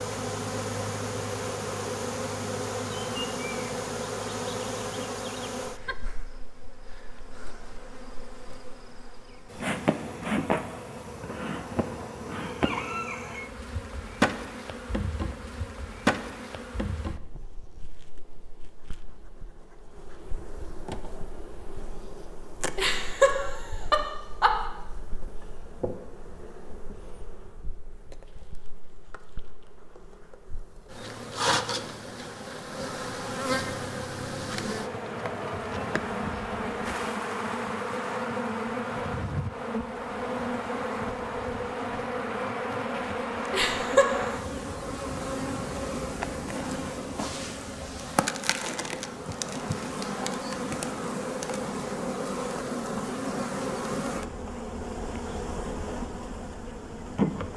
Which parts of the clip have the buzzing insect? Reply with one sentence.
The buzzing insect can be heard from 0.0 to 57.5 s.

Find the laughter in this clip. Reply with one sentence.
The laughter can be heard from 22.8 to 24.5 s and from 43.5 to 44.4 s.